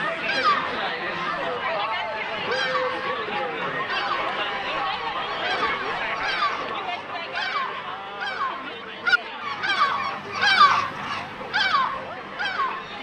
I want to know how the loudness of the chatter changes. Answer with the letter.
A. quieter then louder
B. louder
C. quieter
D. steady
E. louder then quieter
C.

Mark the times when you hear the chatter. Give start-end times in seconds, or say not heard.
0.0-12.9.